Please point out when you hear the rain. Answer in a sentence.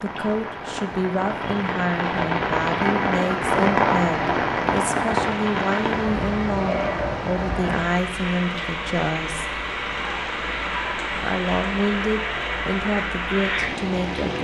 You can hear the rain from 0.0 to 14.3 s.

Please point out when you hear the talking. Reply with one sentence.
You can hear the talking from 0.0 to 9.4 s and from 11.2 to 14.3 s.